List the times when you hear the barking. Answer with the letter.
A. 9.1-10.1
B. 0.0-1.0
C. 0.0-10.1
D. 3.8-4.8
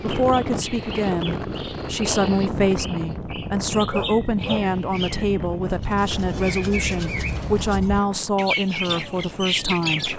D.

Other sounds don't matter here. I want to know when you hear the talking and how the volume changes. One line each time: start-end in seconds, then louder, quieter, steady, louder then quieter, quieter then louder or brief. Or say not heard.
0.0-10.1 steady.